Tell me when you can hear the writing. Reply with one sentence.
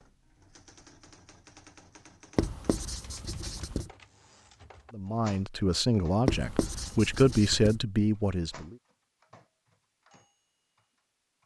You can hear the writing from 2.4 to 3.9 s and from 6.2 to 7.8 s.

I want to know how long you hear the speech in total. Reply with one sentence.
The speech can be heard for 4 seconds in total.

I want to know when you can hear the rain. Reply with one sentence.
The rain can't be heard in this clip.